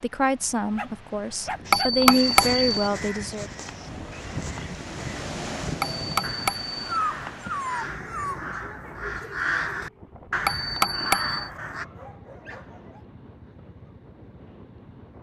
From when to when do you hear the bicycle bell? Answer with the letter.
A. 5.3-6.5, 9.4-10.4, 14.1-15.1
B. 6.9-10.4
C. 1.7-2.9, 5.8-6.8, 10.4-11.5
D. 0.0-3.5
C.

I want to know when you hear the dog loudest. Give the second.
8 s.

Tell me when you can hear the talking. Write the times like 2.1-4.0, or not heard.
0.0-3.5.